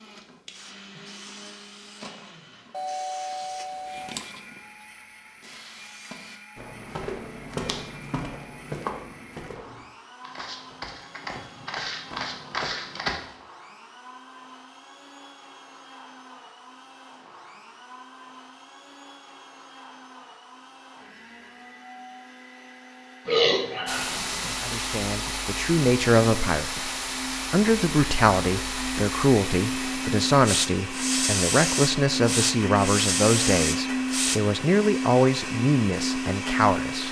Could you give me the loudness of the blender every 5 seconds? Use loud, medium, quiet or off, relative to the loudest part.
quiet, quiet, quiet, quiet, quiet, medium, loud, loud.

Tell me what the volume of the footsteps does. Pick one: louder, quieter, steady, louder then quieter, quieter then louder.
quieter then louder.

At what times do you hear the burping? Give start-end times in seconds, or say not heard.
23.2-24.6.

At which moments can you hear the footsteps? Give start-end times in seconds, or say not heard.
6.5-13.2.